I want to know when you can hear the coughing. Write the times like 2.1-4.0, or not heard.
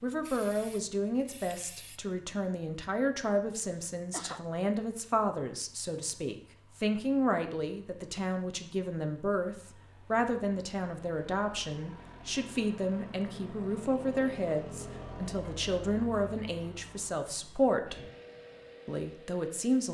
3.5-4.5.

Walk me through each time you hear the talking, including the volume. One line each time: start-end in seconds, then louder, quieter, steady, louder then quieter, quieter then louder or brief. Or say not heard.
0.0-18.1 steady
18.9-19.9 brief.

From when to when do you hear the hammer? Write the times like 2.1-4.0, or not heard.
not heard.